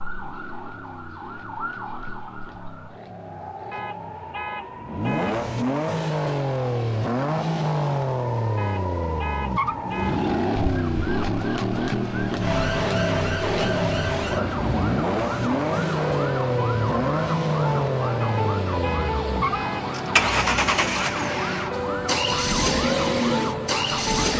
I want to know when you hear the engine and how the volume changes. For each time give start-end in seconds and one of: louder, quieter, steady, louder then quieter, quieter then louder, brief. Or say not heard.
0.0-24.3 louder.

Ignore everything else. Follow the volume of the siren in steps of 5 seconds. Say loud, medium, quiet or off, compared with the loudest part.
medium, medium, loud, loud, loud.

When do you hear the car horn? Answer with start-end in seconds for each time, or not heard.
3.7-5.5, 8.6-10.2, 18.2-19.9.